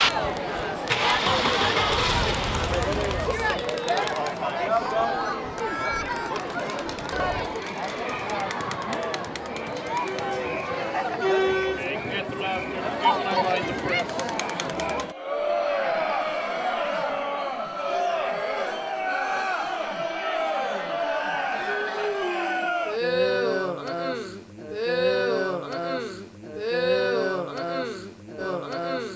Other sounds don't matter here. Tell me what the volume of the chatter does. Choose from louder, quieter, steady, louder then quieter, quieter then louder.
steady.